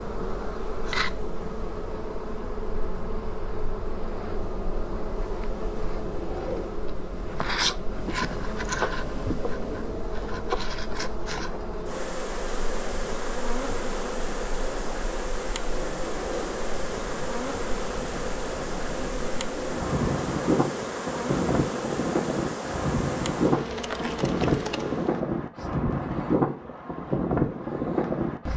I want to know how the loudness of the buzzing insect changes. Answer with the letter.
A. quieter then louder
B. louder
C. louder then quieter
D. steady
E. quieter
D.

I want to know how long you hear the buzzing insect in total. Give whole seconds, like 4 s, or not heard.
25 s.